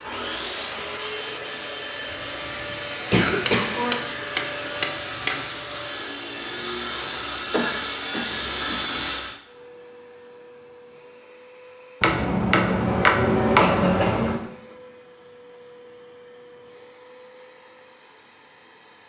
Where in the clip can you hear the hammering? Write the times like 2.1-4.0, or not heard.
3.5-5.5, 12.0-14.4.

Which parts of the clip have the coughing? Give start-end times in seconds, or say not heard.
2.1-3.7, 7.5-8.8, 13.6-14.3.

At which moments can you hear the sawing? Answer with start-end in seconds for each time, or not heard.
0.0-9.4.